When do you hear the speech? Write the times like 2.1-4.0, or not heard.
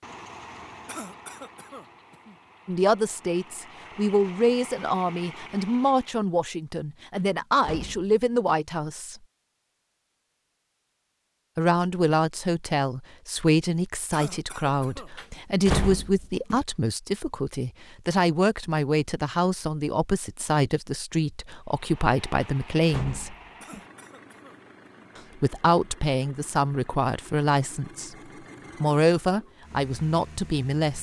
2.6-9.2, 11.6-23.4, 25.1-28.1, 28.8-30.9.